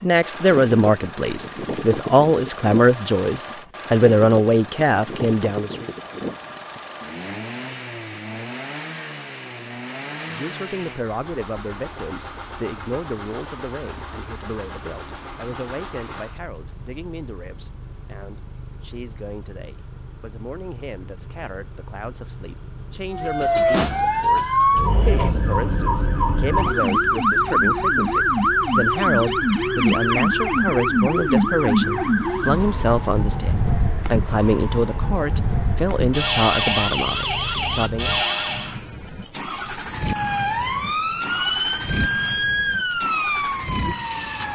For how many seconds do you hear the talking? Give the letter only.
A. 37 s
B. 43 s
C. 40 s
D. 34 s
D.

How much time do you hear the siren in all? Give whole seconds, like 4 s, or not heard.
20 s.